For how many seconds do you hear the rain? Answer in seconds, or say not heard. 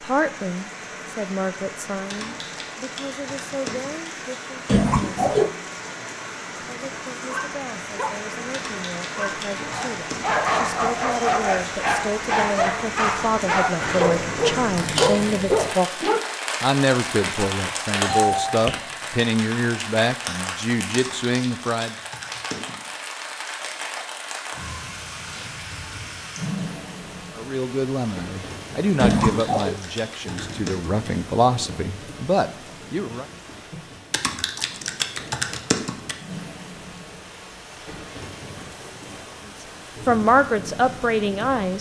42 s.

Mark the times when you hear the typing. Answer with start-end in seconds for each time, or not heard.
2.1-4.1, 8.5-10.2, 20.9-22.8, 29.1-31.1, 34.1-36.1.